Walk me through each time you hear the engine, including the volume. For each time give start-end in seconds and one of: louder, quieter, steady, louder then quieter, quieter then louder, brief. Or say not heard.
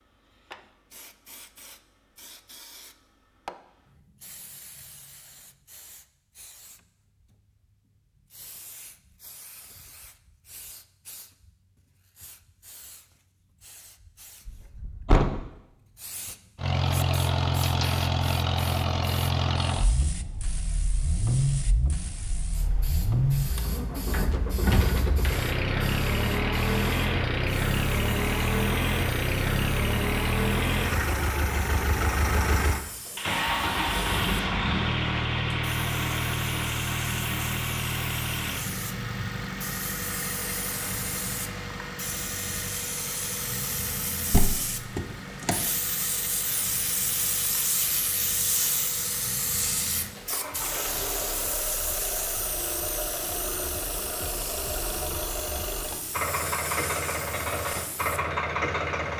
16.6-59.1 quieter then louder.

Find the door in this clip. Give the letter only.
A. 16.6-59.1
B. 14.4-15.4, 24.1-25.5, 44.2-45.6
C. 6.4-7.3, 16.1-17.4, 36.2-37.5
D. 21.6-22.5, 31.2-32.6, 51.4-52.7
B.